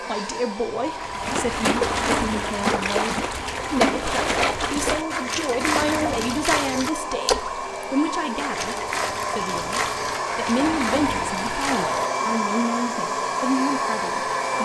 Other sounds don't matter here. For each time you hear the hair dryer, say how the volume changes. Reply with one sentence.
The hair dryer can be heard from 0.0 to 14.6 s, getting louder.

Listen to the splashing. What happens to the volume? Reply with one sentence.
The volume of the splashing goes down.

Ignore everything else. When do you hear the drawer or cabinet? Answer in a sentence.
You can hear the drawer or cabinet from 1.8 to 2.5 s, from 5.6 to 6.3 s and from 10.6 to 11.3 s.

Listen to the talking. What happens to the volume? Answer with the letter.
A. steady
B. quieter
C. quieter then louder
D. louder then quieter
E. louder
A.